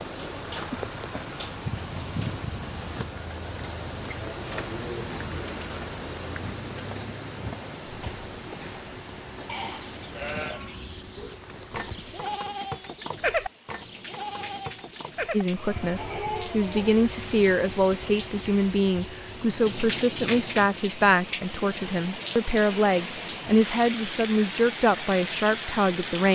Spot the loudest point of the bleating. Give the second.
13 s.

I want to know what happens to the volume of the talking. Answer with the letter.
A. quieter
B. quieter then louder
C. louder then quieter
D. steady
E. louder
D.